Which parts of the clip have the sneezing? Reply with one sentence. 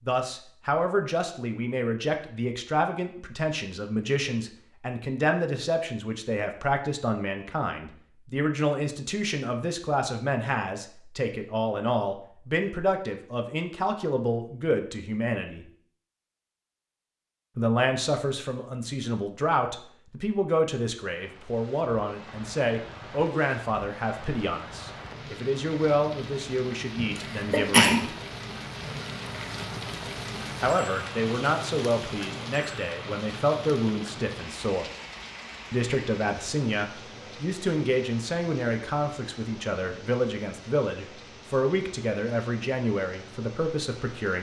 You can hear the sneezing from 27.0 to 28.0 s.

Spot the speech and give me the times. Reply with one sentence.
You can hear the speech from 0.1 to 15.7 s, from 17.6 to 28.1 s, from 30.6 to 34.9 s and from 35.7 to 44.3 s.